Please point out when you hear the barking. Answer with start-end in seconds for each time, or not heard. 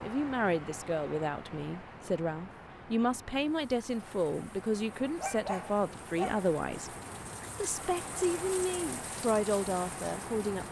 5.2-6.5.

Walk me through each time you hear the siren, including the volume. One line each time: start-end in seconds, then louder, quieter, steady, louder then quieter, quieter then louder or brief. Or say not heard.
not heard.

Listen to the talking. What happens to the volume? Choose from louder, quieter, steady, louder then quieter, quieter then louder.
steady.